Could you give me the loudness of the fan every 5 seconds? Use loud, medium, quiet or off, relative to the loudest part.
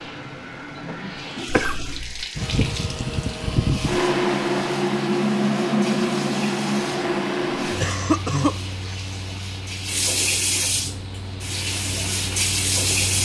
loud, loud, quiet.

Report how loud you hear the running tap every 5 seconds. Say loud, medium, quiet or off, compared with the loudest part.
medium, medium, loud.